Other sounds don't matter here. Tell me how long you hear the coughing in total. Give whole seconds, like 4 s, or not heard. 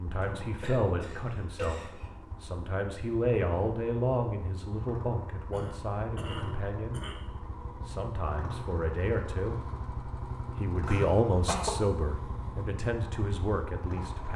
5 s.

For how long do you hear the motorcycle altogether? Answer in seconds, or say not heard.
14 s.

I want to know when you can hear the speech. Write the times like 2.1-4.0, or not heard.
0.0-7.0, 7.8-9.6, 10.6-14.3.